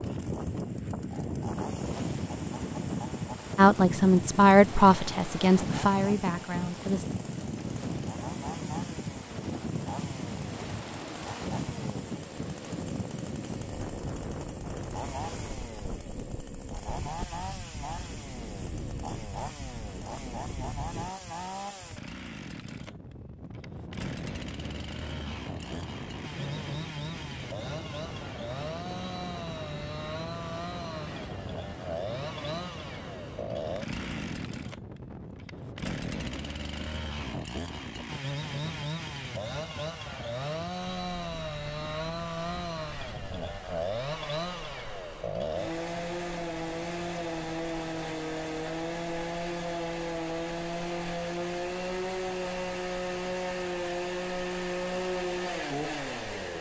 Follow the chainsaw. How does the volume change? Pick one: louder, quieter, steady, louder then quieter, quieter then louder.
louder.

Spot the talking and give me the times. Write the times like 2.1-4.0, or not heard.
3.5-7.0.